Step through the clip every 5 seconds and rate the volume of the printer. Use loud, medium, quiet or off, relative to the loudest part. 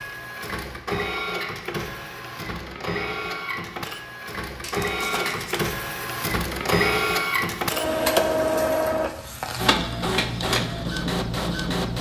medium, loud, loud.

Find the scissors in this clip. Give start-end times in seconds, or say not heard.
4.6-5.7.